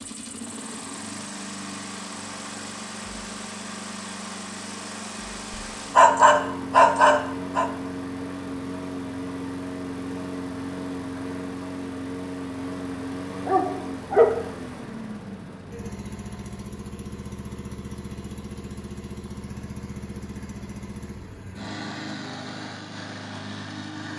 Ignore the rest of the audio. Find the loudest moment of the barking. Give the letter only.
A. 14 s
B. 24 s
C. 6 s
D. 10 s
C.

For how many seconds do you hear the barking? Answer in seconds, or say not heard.
3 s.